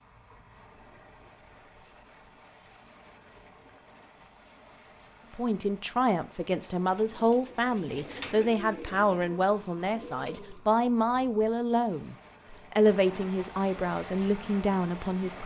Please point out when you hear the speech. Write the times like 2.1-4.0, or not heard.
5.3-15.4.